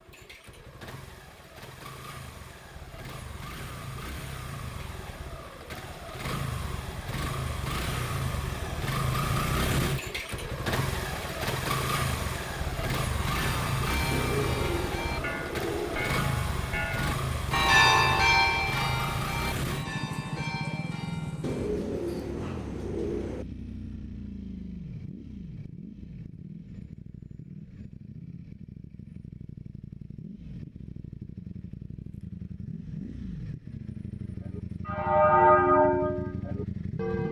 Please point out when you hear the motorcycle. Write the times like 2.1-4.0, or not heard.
0.0-37.2.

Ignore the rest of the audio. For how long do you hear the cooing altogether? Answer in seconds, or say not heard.
4 s.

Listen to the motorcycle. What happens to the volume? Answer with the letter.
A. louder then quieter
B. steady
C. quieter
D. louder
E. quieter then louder
A.